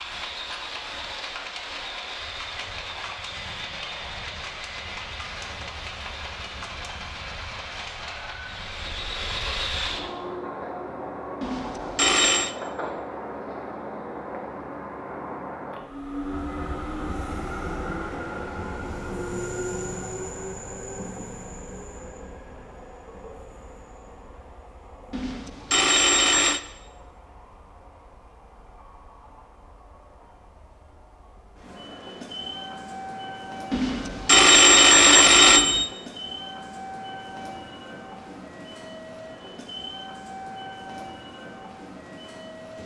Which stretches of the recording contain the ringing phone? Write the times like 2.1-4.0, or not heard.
11.4-12.6, 25.1-26.6, 33.7-35.9.